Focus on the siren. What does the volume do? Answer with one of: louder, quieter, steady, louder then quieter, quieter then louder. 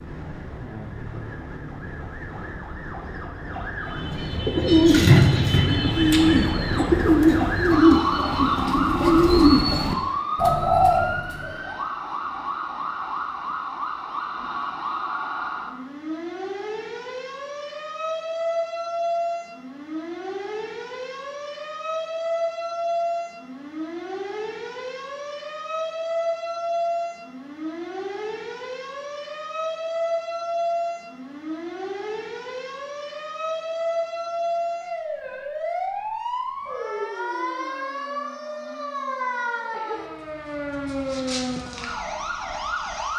steady.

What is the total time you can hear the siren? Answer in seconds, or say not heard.
43 s.